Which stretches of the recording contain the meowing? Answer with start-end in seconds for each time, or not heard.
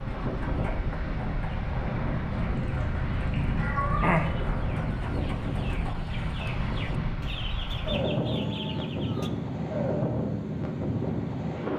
2.3-4.3.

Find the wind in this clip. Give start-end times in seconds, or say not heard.
0.0-11.7.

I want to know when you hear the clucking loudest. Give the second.
4 s.